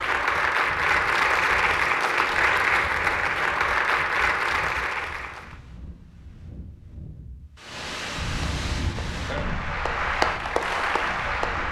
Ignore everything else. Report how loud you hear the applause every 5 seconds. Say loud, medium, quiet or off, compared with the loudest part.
loud, medium, loud.